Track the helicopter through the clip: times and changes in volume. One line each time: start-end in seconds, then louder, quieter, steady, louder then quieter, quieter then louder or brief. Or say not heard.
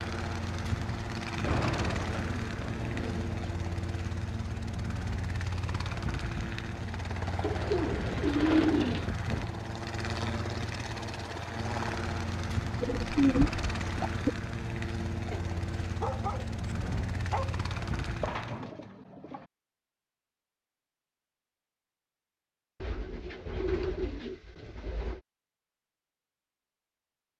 0.0-18.6 steady.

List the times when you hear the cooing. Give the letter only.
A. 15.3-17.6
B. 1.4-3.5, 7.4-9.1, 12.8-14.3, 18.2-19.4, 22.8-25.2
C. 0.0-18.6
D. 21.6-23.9
B.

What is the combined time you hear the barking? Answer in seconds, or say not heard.
2 s.